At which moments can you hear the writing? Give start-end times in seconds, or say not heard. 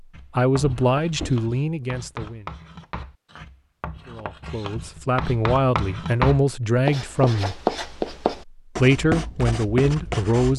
0.1-10.5.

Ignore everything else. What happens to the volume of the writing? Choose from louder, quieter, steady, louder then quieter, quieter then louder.
louder.